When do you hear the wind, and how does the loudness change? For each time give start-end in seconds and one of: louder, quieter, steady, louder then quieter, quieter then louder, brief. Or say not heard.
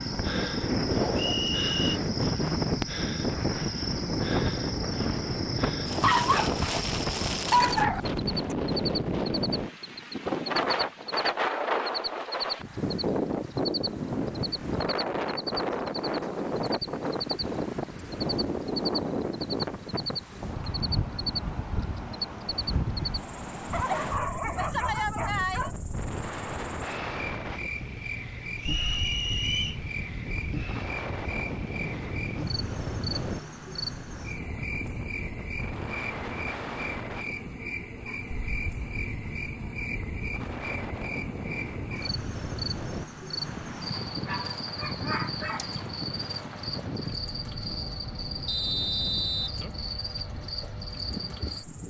0.0-51.8 quieter.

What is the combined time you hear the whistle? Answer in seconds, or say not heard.
3 s.